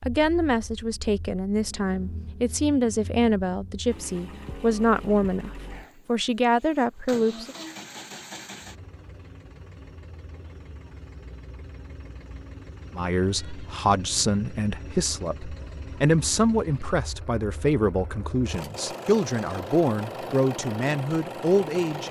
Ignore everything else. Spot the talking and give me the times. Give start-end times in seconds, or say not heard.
0.1-7.5, 12.9-22.0.